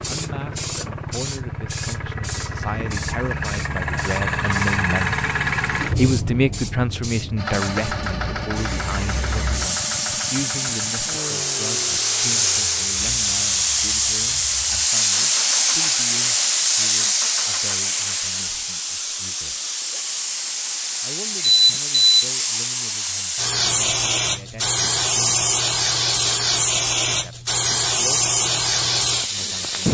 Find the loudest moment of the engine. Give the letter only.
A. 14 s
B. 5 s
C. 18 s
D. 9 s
B.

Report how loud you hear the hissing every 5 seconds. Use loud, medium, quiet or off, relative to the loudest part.
quiet, medium, loud, loud, loud, loud.